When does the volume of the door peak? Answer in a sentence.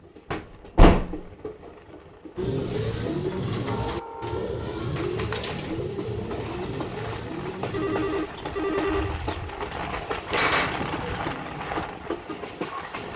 The volume of the door peaks at 1 second.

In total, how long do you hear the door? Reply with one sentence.
The door can be heard for 3 seconds in total.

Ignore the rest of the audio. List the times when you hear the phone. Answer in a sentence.
You can hear the phone from 7.7 to 9.2 s.